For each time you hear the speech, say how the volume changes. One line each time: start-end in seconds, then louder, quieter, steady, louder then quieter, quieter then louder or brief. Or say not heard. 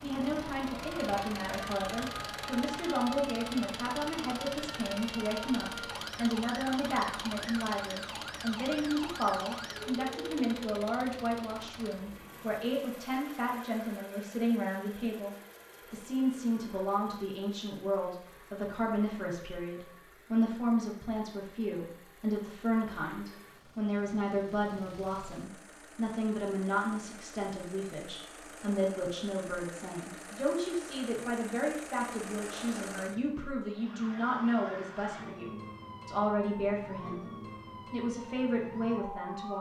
0.0-39.5 steady.